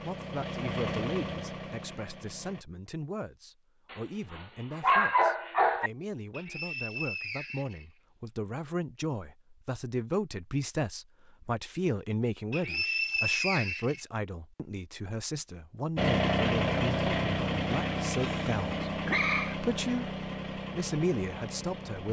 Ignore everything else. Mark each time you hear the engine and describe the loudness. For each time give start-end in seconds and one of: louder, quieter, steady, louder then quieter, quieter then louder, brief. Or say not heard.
0.0-2.6 brief
15.9-22.0 quieter.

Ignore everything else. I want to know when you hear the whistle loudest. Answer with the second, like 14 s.
13 s.